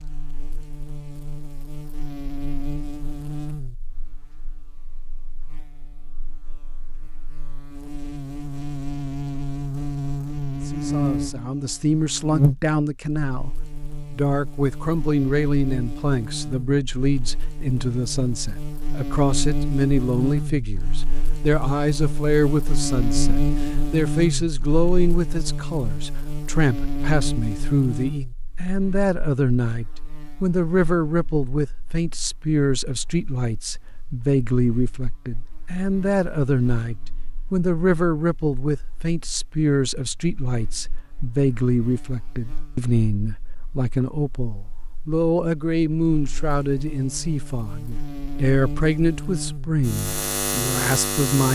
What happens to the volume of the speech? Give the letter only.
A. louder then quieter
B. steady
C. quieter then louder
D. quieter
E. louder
B.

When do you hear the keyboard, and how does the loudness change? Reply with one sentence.
The keyboard can't be heard in this clip.